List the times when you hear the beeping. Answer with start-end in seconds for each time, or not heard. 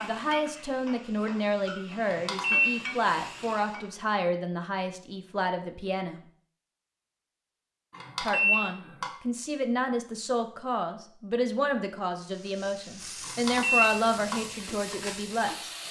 2.0-2.8, 7.9-9.1, 13.2-14.4.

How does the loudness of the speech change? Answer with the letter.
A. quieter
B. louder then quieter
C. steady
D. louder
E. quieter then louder
C.